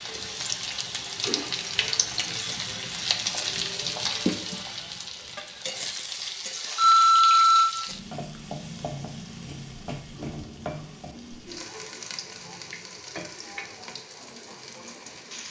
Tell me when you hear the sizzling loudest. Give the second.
4 s.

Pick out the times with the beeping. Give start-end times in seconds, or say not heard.
6.8-7.8.